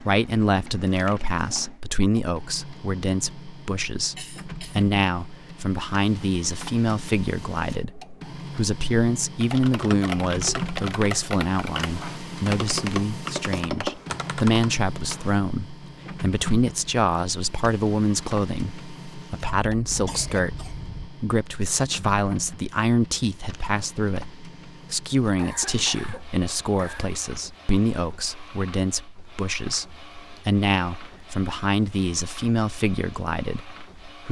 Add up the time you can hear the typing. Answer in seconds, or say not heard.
6 s.